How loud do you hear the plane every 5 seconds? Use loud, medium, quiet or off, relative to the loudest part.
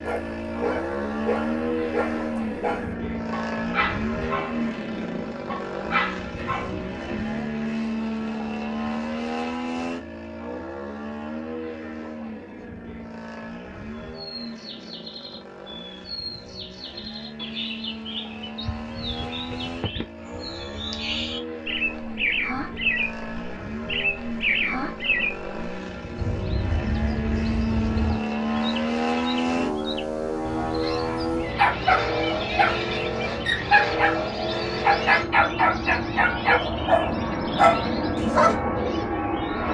loud, loud, medium, medium, medium, loud, loud, loud.